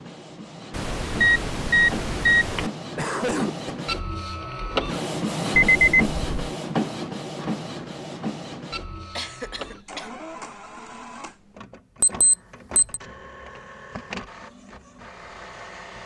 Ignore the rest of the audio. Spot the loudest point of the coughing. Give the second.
3 s.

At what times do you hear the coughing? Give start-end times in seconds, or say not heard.
3.0-3.7, 9.2-10.1.